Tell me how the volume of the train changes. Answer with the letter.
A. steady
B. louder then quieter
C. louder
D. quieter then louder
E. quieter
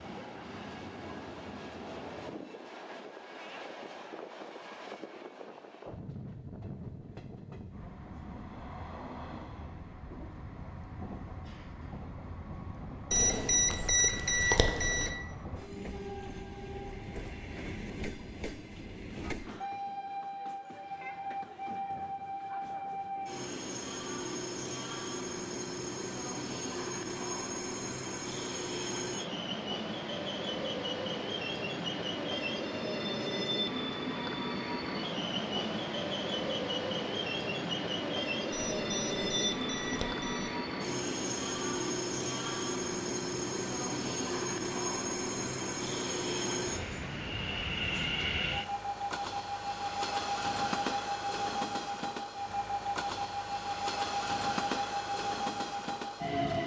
C.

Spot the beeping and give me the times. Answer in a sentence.
The beeping can be heard from 13.1 to 15.1 s and from 38.5 to 40.5 s.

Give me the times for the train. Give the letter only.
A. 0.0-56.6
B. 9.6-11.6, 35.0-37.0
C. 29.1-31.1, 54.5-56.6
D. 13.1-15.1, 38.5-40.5
A.